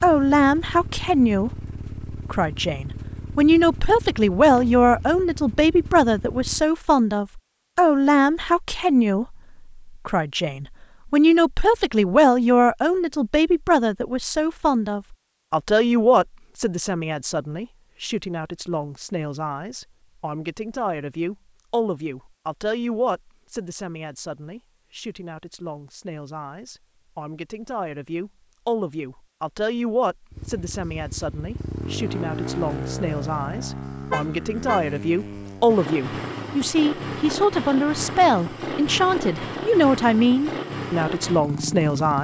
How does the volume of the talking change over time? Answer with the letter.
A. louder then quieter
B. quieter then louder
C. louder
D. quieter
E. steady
B.